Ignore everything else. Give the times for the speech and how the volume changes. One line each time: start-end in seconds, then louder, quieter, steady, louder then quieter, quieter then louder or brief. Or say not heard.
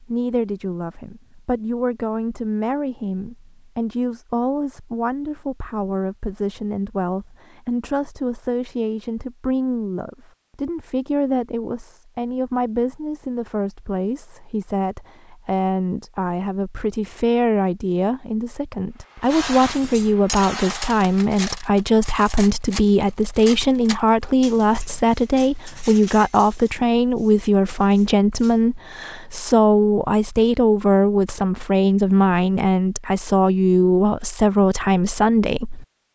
0.0-35.9 louder.